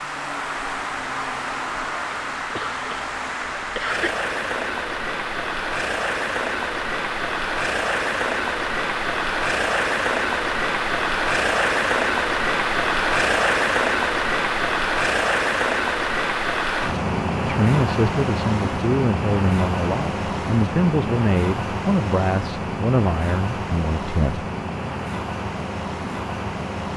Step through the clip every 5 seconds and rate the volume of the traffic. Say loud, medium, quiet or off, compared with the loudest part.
medium, loud, loud, loud, medium, medium.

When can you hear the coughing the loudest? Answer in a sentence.
The loudest moment of the coughing is at 4 seconds.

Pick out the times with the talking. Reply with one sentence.
The talking can be heard from 17.4 to 24.4 s.